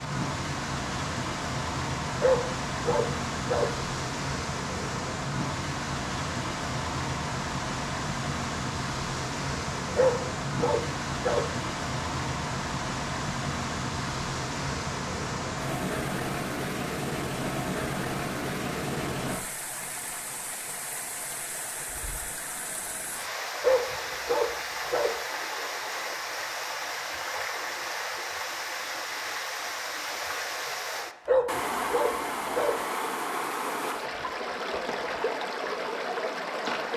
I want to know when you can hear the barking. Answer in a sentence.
You can hear the barking from 2.2 to 3.7 s, from 9.9 to 11.4 s, from 23.6 to 25.1 s and from 31.2 to 32.8 s.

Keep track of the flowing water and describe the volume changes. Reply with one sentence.
The volume of the flowing water stays about the same.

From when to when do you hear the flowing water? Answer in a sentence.
You can hear the flowing water from 0.0 to 36.9 s.